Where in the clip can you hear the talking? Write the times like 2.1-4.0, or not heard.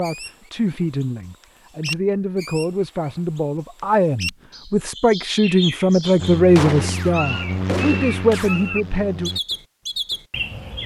0.0-9.3.